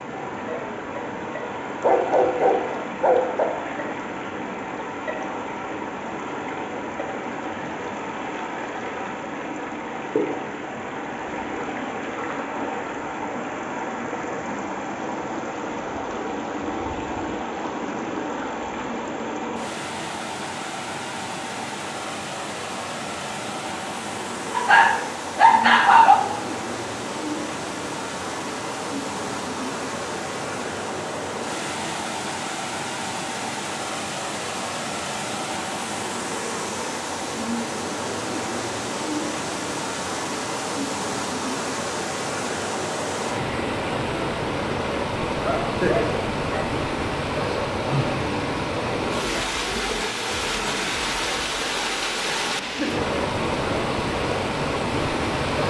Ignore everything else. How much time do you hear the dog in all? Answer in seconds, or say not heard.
5 s.